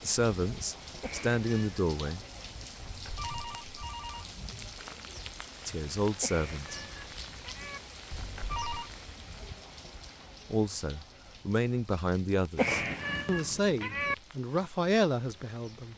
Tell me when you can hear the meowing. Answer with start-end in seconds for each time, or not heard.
1.0-1.8, 6.2-7.8, 12.6-14.2.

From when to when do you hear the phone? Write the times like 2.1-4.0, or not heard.
2.8-4.3, 8.1-8.9.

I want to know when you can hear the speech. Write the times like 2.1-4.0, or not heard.
0.0-2.2, 5.7-6.8, 10.5-15.9.